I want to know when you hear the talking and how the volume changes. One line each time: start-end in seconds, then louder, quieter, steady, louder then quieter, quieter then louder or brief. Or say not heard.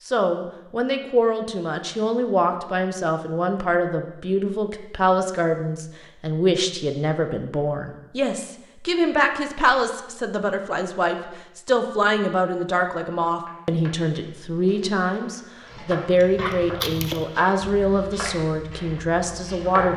0.1-19.9 steady.